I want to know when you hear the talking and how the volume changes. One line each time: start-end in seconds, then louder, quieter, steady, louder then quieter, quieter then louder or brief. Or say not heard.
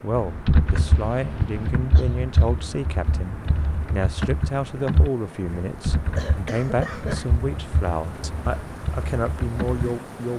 0.0-10.3 steady.